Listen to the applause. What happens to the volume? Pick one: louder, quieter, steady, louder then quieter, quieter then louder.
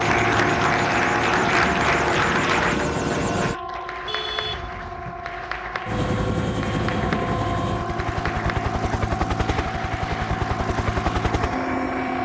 quieter.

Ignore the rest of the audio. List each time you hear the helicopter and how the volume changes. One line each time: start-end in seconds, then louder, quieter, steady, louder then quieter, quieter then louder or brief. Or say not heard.
0.0-12.2 steady.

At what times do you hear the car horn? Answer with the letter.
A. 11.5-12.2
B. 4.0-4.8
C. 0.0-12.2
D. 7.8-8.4
B.